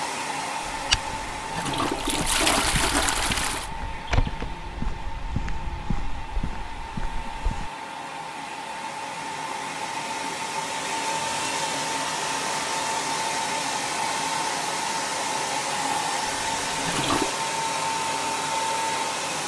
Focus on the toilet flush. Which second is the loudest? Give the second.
3 s.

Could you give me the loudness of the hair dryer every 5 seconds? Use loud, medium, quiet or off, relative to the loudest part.
medium, medium, loud, loud.